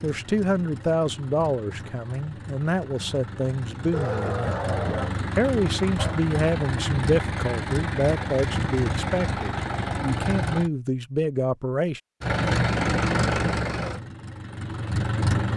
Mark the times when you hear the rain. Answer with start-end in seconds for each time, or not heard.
not heard.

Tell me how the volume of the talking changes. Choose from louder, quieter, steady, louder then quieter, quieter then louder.
steady.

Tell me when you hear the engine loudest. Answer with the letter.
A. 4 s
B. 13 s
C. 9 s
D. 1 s
B.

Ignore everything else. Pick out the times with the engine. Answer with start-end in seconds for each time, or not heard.
0.0-10.7, 12.2-15.5.